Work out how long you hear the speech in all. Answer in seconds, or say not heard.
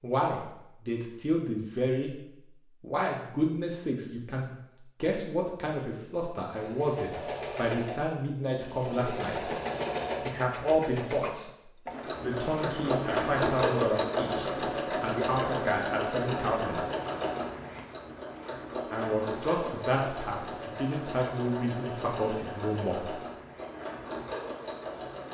19 s.